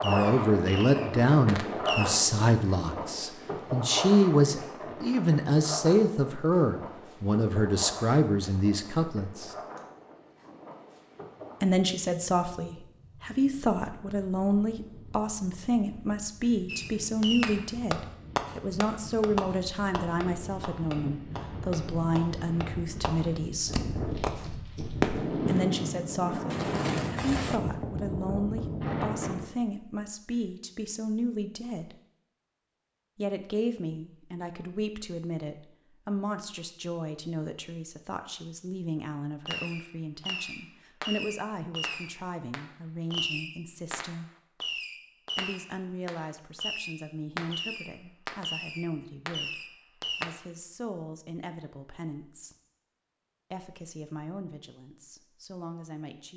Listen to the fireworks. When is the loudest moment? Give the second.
25 s.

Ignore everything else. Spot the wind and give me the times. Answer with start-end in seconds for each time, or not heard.
0.0-29.4.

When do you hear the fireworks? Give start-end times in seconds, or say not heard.
0.0-2.1, 16.6-27.6, 39.5-50.2.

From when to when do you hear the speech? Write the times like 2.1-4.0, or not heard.
0.0-9.6, 11.6-23.8, 25.4-31.9, 33.1-44.3, 45.4-52.5, 53.5-56.3.